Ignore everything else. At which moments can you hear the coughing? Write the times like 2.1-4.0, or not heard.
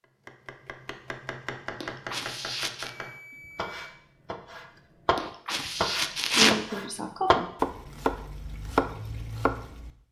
1.8-2.9, 5.2-7.5.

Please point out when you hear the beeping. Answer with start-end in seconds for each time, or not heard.
2.8-4.0.